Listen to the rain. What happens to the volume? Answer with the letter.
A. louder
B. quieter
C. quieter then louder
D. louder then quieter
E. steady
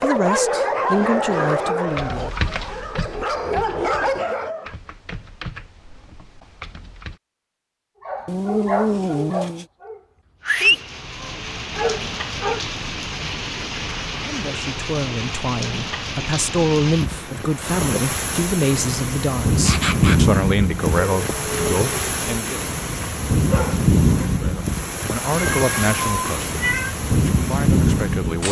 A.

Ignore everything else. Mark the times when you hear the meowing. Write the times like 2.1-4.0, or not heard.
8.2-9.7, 25.4-26.9.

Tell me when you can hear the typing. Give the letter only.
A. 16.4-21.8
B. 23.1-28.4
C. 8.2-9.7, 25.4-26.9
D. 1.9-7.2
D.